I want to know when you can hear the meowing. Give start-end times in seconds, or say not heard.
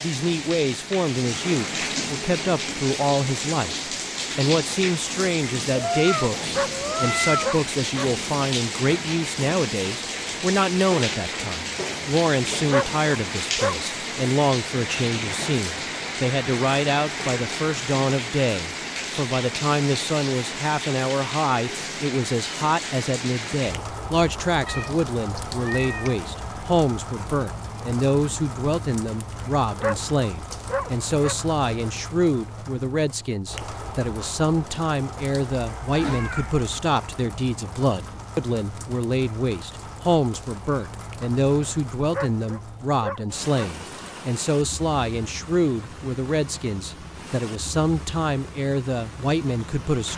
5.7-7.5, 24.6-26.1, 35.6-36.8.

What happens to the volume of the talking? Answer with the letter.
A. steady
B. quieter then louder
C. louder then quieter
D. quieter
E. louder
A.